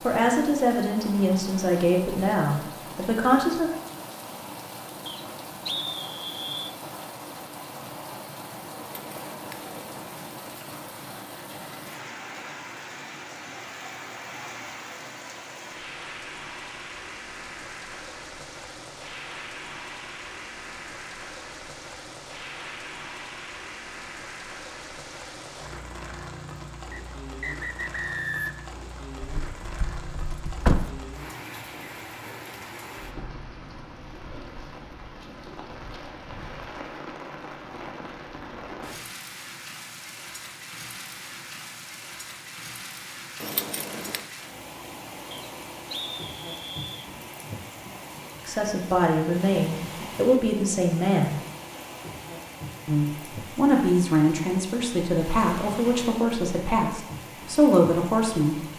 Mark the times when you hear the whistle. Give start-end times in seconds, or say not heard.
5.0-6.7, 26.9-28.6, 45.3-47.1.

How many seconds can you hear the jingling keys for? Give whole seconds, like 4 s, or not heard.
4 s.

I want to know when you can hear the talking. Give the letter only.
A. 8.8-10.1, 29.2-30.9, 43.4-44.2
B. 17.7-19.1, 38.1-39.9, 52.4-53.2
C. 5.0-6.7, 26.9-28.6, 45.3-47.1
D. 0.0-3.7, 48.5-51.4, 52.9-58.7
D.